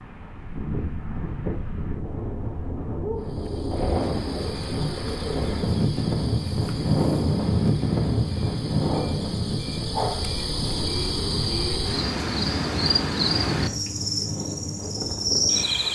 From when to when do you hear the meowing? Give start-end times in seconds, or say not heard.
not heard.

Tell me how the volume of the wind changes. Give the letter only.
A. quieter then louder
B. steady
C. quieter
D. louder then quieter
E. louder
D.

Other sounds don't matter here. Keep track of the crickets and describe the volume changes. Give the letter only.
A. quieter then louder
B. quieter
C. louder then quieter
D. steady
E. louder
E.